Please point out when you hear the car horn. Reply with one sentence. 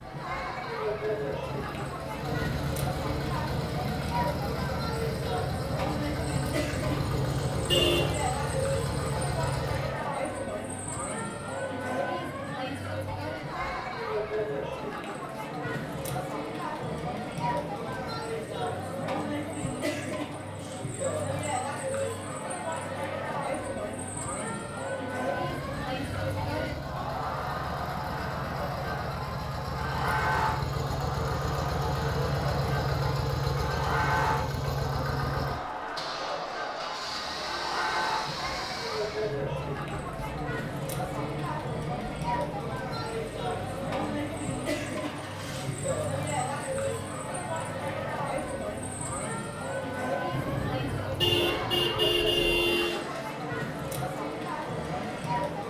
The car horn can be heard from 6.8 to 8.2 s and from 50.3 to 53.0 s.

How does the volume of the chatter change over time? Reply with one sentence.
The volume of the chatter stays about the same.